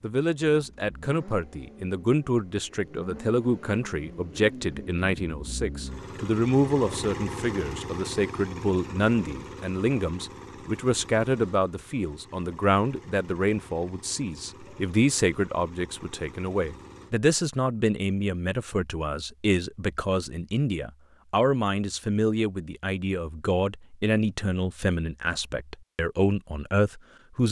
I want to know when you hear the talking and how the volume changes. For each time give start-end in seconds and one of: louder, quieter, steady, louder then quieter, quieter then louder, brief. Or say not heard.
0.0-27.4 steady.